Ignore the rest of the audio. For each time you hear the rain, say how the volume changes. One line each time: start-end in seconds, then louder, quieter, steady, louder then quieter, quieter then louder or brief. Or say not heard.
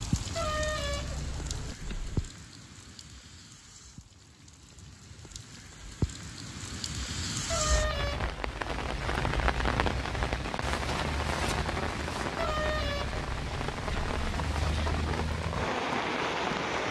0.0-16.8 louder.